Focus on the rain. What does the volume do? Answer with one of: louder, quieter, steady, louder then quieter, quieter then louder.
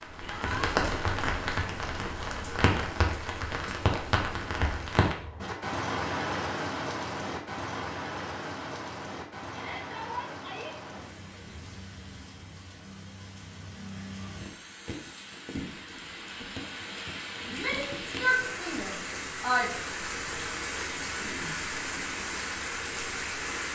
quieter then louder.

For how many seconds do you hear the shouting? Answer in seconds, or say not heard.
4 s.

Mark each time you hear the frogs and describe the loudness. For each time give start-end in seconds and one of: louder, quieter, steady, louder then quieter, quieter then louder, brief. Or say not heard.
not heard.